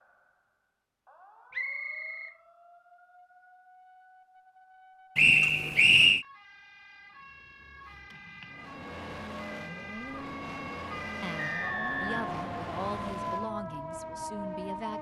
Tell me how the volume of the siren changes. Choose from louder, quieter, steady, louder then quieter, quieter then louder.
louder.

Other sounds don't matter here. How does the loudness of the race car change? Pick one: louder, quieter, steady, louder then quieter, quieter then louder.
steady.